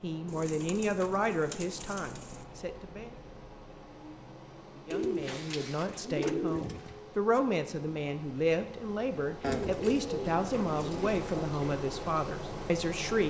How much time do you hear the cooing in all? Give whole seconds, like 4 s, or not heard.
6 s.